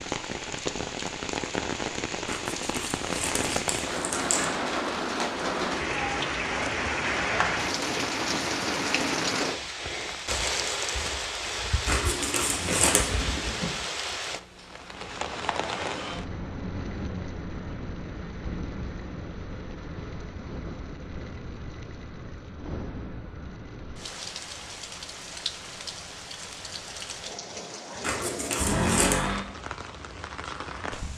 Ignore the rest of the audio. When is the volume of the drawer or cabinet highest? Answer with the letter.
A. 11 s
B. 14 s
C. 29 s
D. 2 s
C.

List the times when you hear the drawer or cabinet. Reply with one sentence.
You can hear the drawer or cabinet from 12.8 to 13.7 s and from 28.6 to 29.4 s.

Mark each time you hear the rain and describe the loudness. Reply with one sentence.
You can hear the rain from 0.0 to 31.1 s, getting quieter.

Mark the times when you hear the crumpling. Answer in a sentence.
You can hear the crumpling from 2.2 to 4.5 s, from 11.8 to 13.1 s and from 28.0 to 29.2 s.